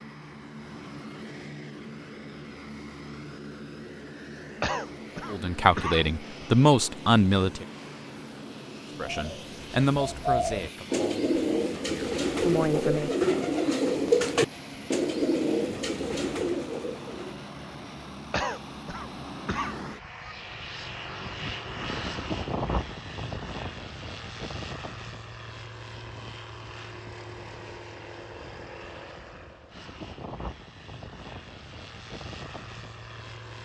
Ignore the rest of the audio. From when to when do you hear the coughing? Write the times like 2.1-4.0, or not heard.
4.6-6.1, 18.3-19.9.